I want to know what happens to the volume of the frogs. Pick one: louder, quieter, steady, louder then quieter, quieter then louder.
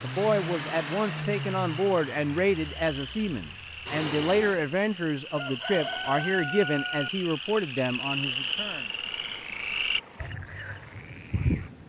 louder.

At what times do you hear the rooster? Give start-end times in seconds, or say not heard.
5.3-7.1.